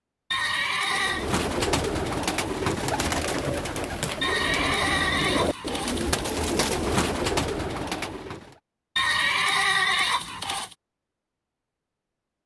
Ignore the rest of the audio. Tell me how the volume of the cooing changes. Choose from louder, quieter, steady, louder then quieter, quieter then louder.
steady.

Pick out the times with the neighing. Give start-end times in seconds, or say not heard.
0.3-1.3, 4.2-6.2, 8.9-10.8.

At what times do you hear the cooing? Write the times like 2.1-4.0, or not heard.
0.8-8.6.